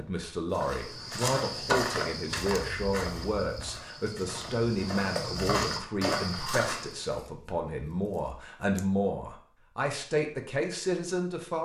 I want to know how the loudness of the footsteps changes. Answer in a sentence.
The volume of the footsteps goes down, then up.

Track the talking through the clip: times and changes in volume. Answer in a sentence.
The talking can be heard from 0.0 to 11.6 s, at a steady volume.